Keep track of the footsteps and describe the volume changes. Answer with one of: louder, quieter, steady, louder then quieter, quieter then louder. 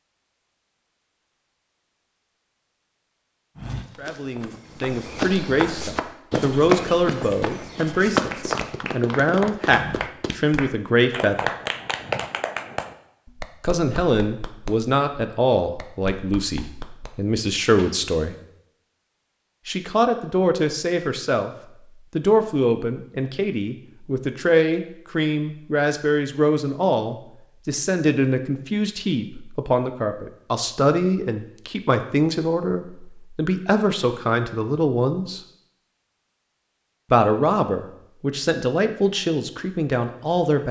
louder then quieter.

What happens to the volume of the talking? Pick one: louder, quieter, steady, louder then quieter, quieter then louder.
steady.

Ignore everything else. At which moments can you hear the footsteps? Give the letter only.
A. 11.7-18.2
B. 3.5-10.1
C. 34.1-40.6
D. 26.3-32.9
B.